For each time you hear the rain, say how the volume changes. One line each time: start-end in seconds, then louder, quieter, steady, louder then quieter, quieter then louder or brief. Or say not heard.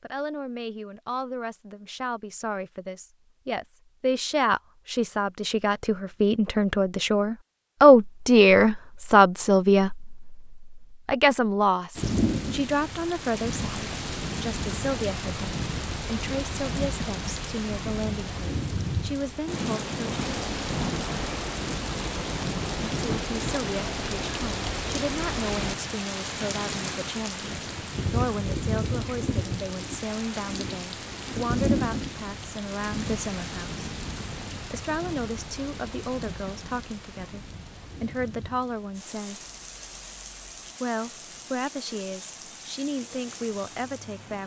11.9-44.4 quieter.